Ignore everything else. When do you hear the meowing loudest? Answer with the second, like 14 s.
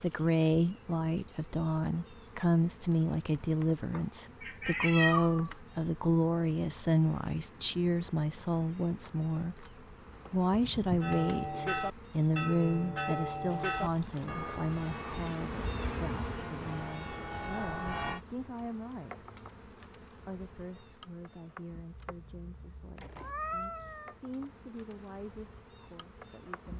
5 s.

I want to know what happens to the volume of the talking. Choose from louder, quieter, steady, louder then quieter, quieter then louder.
quieter.